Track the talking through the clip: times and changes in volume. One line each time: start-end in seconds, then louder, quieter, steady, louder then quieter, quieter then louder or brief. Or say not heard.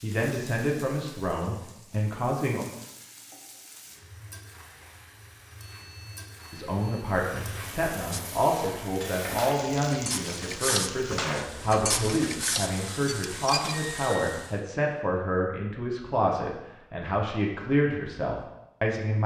0.0-2.6 brief
6.5-19.2 steady.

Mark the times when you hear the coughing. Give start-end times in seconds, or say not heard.
not heard.